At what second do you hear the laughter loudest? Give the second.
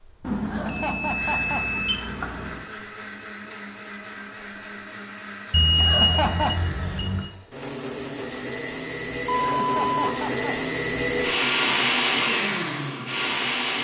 6 s.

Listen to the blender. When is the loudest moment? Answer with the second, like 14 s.
12 s.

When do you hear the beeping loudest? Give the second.
6 s.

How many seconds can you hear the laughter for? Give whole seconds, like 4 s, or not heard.
3 s.